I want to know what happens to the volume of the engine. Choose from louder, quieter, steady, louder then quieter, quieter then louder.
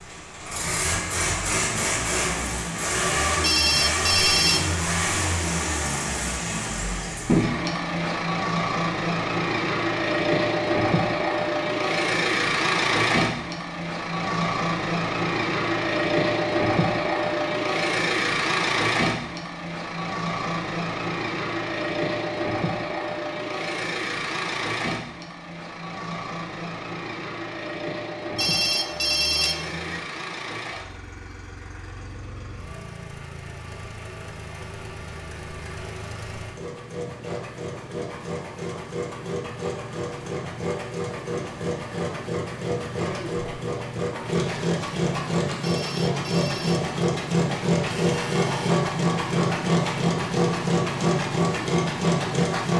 quieter then louder.